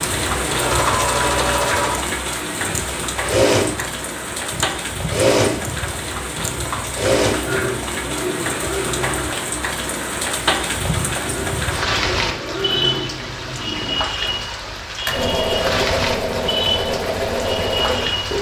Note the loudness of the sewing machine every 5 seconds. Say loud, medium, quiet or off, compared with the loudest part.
loud, loud, medium, loud.